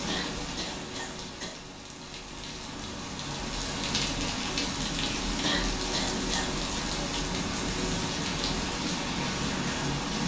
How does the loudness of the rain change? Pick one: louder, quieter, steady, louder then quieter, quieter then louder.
louder.